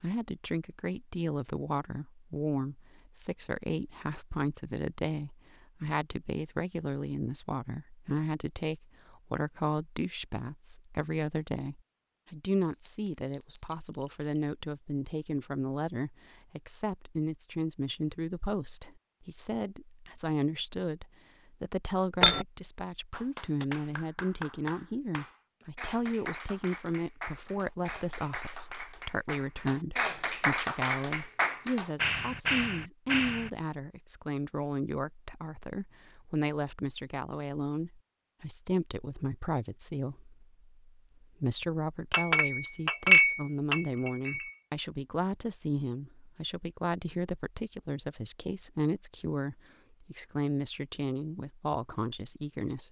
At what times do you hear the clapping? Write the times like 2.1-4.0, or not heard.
23.1-33.5.